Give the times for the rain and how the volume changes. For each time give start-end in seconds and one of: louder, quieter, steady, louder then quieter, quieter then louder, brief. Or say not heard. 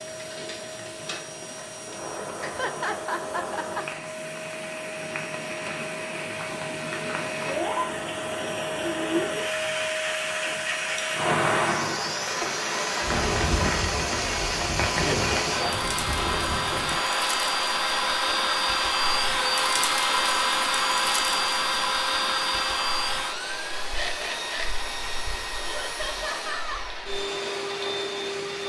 0.0-28.6 louder then quieter.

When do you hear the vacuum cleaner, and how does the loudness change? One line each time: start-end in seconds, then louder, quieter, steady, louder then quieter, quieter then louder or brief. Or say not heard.
0.0-28.6 louder then quieter.